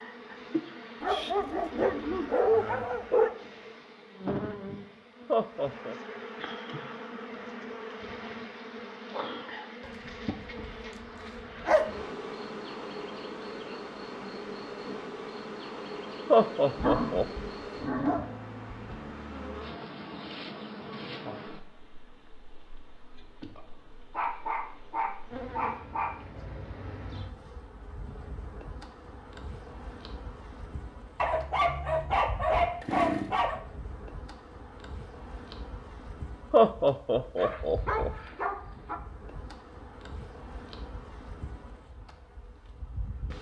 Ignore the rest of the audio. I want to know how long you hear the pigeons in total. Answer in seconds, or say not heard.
not heard.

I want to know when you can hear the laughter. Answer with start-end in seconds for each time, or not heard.
5.2-6.0, 16.3-17.2, 36.5-38.1.